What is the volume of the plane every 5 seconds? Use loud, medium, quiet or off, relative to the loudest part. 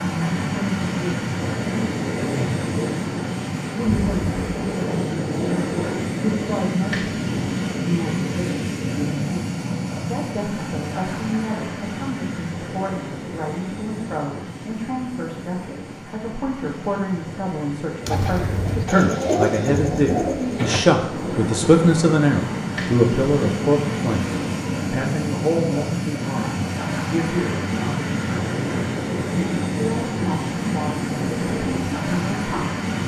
loud, loud, medium, medium, loud, loud, loud.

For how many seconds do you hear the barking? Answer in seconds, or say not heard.
not heard.